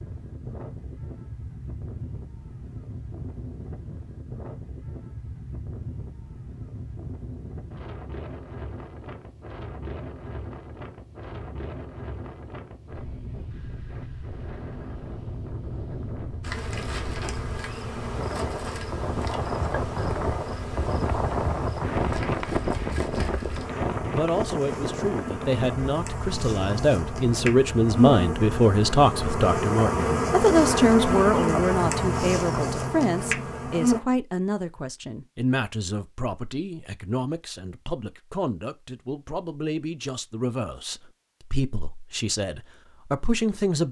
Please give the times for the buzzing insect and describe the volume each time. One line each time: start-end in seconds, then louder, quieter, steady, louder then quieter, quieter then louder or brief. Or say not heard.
16.4-34.0 louder.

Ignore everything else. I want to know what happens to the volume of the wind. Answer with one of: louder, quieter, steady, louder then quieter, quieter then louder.
louder.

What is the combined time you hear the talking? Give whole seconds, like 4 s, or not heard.
20 s.